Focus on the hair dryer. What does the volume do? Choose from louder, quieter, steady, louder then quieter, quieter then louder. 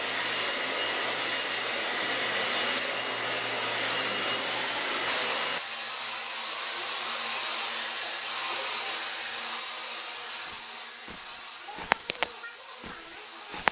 quieter.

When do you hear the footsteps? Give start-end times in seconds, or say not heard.
10.4-13.6.